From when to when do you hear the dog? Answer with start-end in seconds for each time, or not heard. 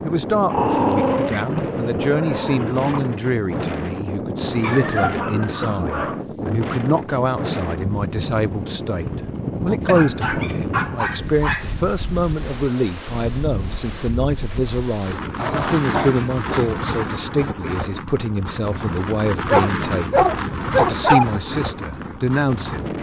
0.5-3.0, 4.6-6.2, 9.8-11.9, 15.3-16.8, 19.5-21.2.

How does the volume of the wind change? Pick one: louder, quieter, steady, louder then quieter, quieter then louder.
steady.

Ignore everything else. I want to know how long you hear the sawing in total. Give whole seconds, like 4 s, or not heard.
not heard.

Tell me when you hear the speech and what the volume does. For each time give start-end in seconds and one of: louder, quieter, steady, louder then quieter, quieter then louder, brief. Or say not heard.
0.1-22.9 steady.